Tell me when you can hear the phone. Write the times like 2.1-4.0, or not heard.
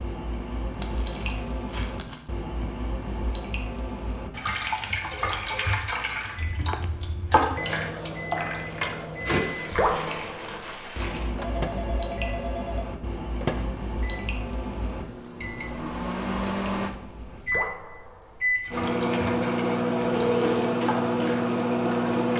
5.1-5.8, 11.3-12.8, 20.1-20.6.